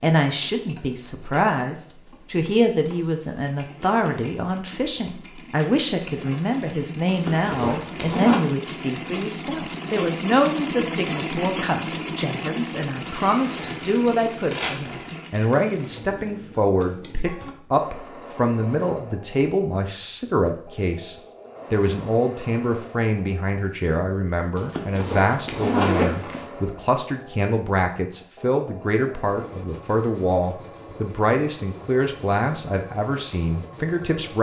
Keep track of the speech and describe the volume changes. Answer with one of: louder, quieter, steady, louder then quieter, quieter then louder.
steady.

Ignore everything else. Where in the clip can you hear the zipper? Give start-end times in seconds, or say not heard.
7.0-8.4, 12.9-15.2, 24.6-26.4.